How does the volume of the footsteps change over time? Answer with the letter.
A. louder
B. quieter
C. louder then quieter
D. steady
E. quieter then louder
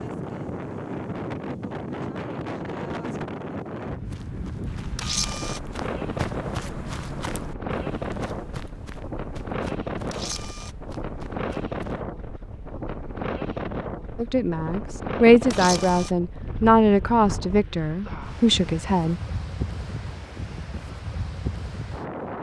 C.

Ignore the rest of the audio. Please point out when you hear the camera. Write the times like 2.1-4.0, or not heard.
5.0-5.6, 10.1-10.8, 15.5-16.1.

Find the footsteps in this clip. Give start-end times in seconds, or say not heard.
4.0-12.1.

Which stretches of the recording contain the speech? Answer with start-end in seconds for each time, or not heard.
14.2-19.2.